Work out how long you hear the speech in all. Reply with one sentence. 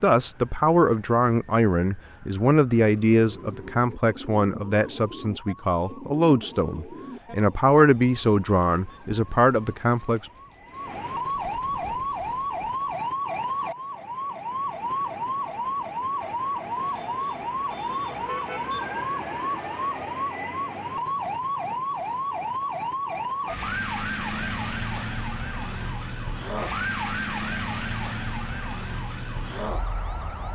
You can hear the speech for 10 seconds altogether.